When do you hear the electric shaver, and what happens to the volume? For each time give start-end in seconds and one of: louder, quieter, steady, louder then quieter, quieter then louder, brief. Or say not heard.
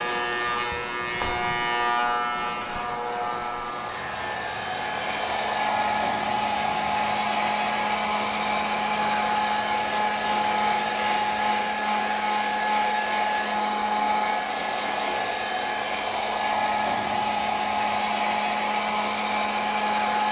0.0-11.8 quieter.